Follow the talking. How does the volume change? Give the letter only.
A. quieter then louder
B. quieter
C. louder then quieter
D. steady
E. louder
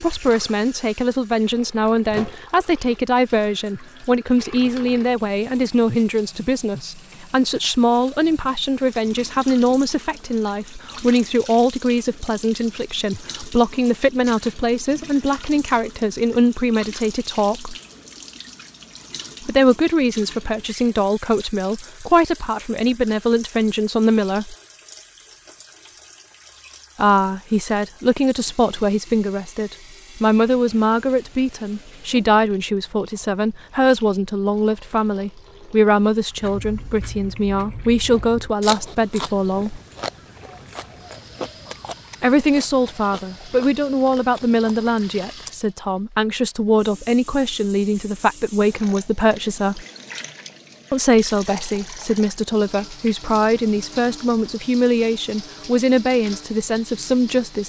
D.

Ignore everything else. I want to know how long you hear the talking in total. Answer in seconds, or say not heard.
50 s.